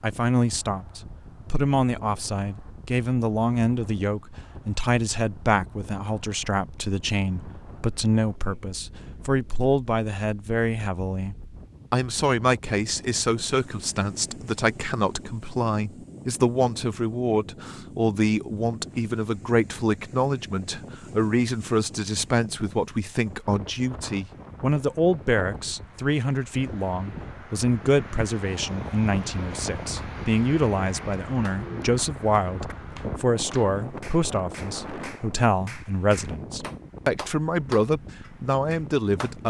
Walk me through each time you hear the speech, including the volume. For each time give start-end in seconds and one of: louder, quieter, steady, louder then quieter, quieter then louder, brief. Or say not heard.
0.0-39.4 steady.